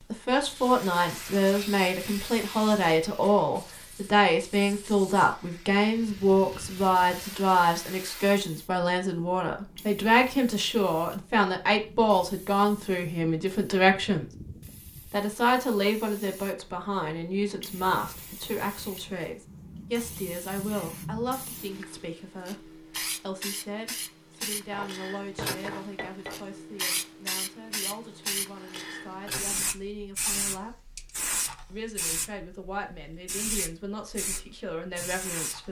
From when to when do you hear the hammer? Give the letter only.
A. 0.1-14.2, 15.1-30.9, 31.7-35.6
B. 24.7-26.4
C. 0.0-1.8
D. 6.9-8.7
B.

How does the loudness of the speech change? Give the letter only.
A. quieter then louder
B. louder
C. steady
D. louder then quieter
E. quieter
E.